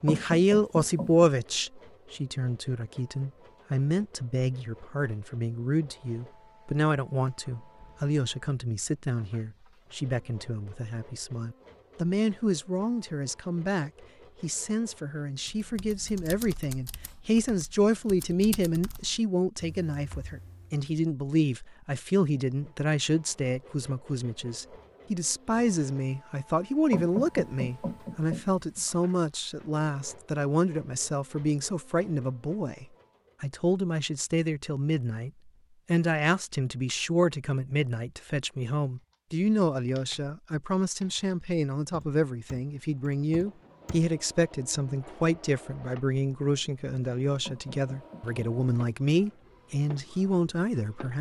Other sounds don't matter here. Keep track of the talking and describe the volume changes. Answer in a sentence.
The volume of the talking stays about the same.